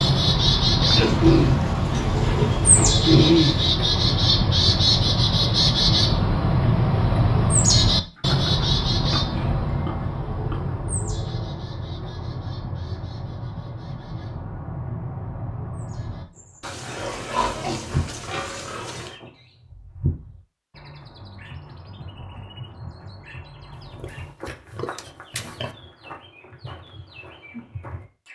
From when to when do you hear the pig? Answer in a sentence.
The pig can be heard from 0.9 to 3.8 s, from 8.2 to 10.8 s, from 16.6 to 19.1 s and from 23.9 to 25.7 s.